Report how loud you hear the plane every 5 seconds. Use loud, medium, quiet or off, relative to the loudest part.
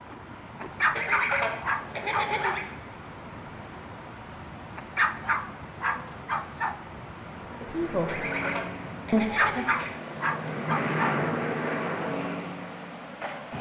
off, medium, loud.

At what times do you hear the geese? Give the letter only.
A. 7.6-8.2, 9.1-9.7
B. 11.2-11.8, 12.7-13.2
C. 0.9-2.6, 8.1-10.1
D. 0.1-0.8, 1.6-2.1
C.